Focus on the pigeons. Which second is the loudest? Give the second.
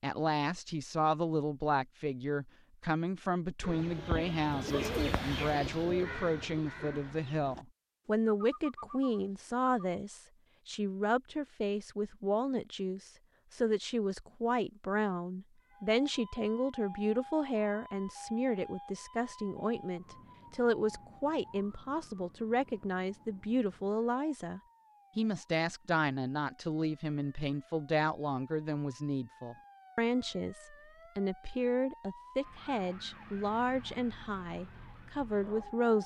5 s.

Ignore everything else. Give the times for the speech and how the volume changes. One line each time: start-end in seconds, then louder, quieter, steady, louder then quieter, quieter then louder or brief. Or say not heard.
0.0-36.0 steady.